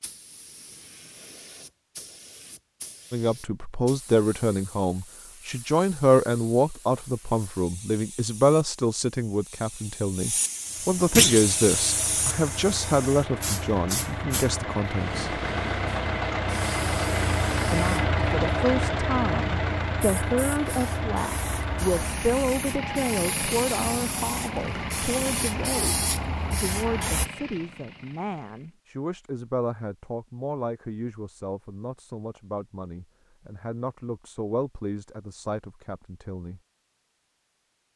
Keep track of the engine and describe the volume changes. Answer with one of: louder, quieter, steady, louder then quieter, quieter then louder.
louder then quieter.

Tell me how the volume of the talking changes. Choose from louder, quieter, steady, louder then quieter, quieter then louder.
quieter.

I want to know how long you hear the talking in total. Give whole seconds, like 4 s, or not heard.
31 s.